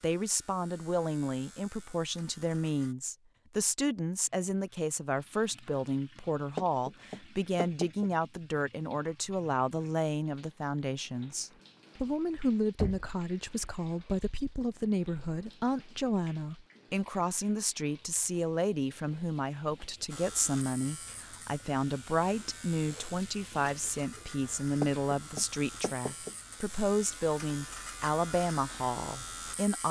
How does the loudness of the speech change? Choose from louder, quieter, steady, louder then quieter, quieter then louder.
steady.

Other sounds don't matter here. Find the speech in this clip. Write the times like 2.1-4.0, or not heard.
0.0-29.8.